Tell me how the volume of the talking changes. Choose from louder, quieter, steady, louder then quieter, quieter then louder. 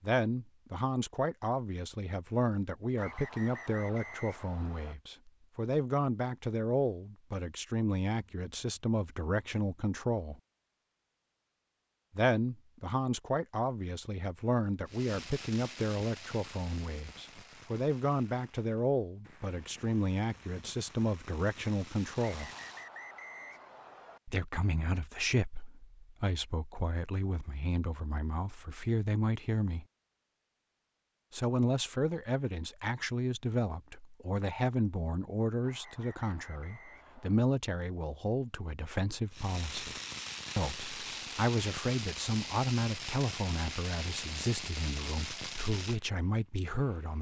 steady.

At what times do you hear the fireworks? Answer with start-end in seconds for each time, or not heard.
14.8-22.9, 39.3-47.1.